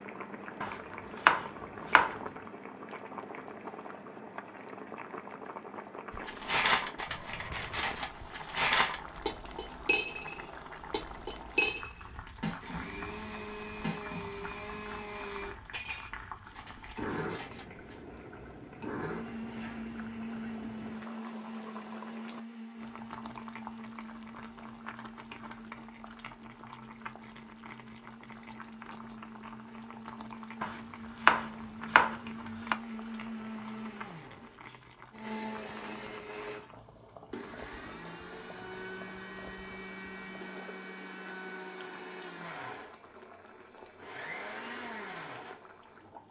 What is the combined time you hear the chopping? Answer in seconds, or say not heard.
4 s.